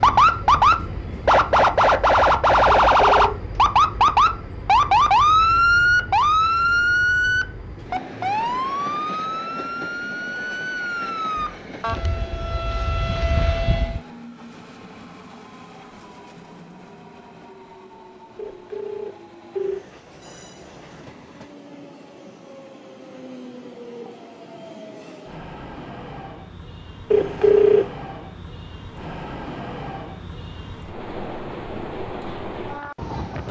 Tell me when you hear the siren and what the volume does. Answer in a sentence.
The siren can be heard from 0.0 to 14.0 s, getting quieter.